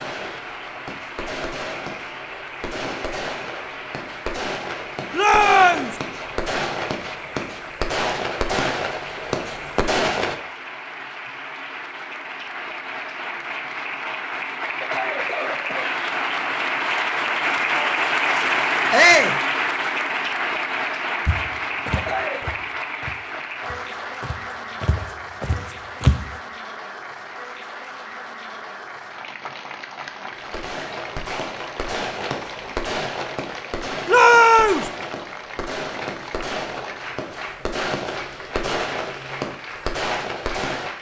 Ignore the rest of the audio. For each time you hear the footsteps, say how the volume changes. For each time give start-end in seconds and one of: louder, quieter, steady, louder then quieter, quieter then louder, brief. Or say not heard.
21.2-26.3 quieter then louder.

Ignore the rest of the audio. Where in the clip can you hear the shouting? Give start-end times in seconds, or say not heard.
5.2-5.9, 18.9-19.4, 34.0-34.9.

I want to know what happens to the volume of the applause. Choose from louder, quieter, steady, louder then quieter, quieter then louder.
louder then quieter.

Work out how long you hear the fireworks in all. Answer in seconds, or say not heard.
21 s.